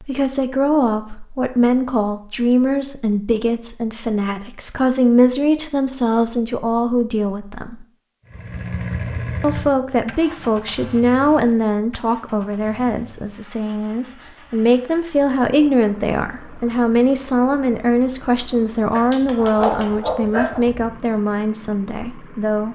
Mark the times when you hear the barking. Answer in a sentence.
The barking can be heard from 18.9 to 20.9 s.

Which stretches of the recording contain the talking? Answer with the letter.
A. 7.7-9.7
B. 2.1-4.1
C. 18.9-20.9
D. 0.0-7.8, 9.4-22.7
D.